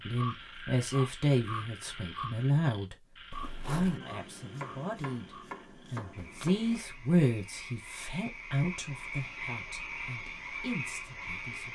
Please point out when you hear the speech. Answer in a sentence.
The speech can be heard from 0.1 to 3.0 s and from 3.6 to 11.7 s.